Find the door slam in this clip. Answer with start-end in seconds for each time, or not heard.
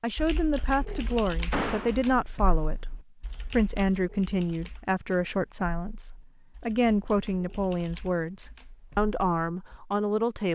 0.8-2.0.